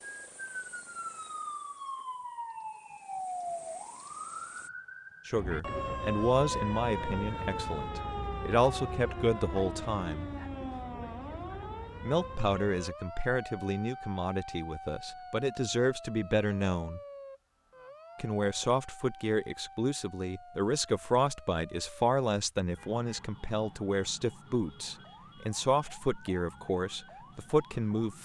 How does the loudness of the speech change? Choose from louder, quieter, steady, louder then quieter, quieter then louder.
steady.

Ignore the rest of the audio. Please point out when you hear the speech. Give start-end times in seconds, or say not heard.
5.2-10.3, 12.0-17.0, 18.1-28.2.